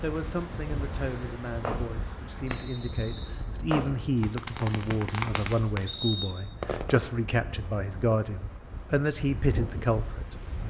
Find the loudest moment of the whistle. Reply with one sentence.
The volume of the whistle peaks at 6 seconds.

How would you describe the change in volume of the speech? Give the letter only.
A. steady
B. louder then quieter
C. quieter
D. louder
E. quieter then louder
D.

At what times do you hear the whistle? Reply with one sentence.
The whistle can be heard from 2.5 to 3.4 s and from 5.8 to 6.3 s.